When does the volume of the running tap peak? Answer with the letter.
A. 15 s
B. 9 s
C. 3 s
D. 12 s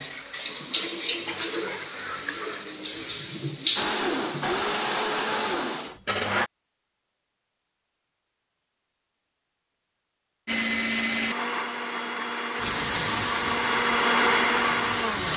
C.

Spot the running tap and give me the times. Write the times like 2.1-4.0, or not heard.
0.0-4.5, 12.6-15.3.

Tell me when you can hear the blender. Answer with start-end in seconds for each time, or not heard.
3.8-6.5, 10.4-15.3.